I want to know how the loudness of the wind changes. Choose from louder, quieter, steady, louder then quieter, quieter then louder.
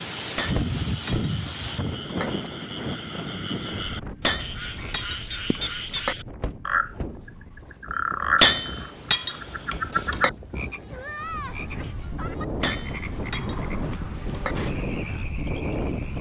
quieter then louder.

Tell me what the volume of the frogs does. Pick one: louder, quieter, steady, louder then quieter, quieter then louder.
louder then quieter.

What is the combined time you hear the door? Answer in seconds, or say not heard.
3 s.